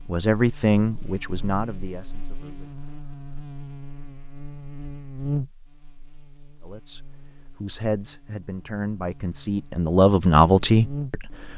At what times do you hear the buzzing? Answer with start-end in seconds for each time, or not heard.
0.0-11.5.